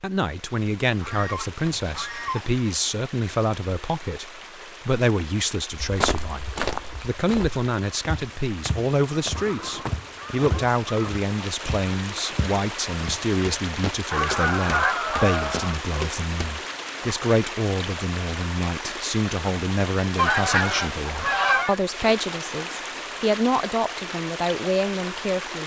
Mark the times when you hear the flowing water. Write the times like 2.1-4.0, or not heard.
0.0-25.6.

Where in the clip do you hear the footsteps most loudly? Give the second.
7 s.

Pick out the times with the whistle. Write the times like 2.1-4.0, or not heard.
not heard.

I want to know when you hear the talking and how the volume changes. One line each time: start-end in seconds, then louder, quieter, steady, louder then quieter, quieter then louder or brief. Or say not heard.
0.0-25.6 steady.